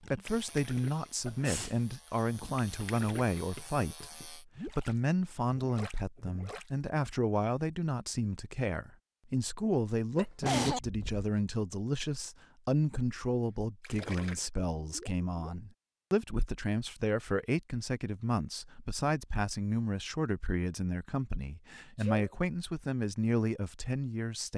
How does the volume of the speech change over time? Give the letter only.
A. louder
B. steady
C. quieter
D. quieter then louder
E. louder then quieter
B.